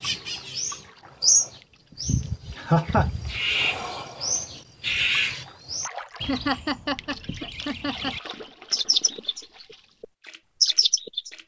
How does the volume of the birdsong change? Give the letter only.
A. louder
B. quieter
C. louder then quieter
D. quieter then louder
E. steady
D.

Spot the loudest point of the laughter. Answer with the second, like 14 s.
3 s.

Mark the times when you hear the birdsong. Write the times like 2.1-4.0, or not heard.
0.0-11.3.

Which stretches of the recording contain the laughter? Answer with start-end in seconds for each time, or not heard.
2.5-3.1, 6.2-8.2.